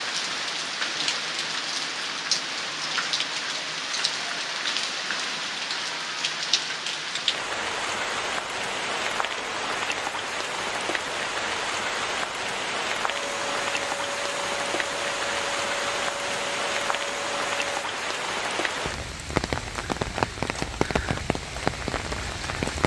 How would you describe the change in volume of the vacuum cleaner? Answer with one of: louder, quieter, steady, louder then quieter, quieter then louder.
steady.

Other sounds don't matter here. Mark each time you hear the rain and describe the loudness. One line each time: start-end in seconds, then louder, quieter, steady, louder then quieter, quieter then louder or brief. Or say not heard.
0.0-22.8 steady.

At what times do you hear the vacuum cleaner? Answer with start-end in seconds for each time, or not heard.
13.1-17.9.